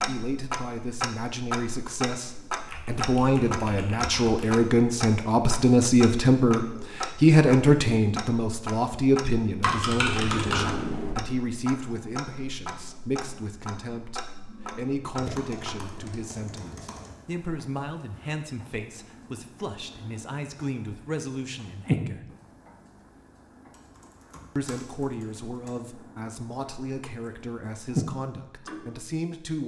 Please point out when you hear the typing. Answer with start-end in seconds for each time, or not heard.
2.6-4.6, 9.6-11.2, 15.2-17.1, 23.7-25.8.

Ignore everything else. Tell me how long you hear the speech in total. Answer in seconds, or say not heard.
27 s.